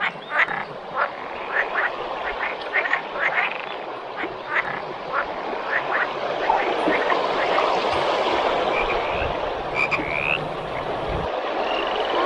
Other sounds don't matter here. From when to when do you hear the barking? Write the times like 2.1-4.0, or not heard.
not heard.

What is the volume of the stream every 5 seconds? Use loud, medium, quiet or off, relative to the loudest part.
medium, loud, loud.